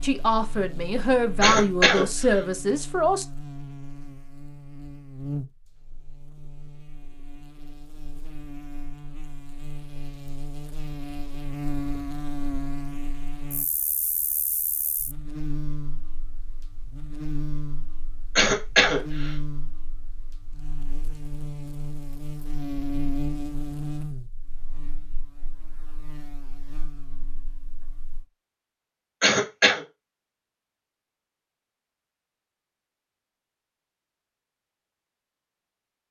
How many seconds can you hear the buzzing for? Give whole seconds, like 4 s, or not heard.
28 s.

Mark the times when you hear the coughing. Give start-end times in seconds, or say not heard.
1.4-2.4, 18.4-19.3, 29.2-29.8.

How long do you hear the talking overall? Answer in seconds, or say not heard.
3 s.